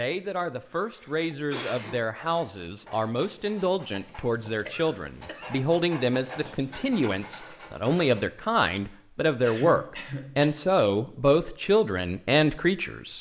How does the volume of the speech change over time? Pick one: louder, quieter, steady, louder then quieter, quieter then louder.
louder.